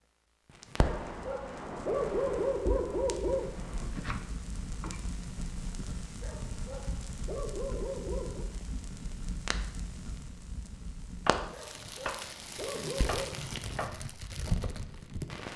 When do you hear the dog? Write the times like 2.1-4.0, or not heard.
0.8-3.5, 6.2-8.5, 11.5-13.3.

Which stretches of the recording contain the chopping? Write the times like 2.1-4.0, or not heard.
3.9-5.7, 11.2-14.0.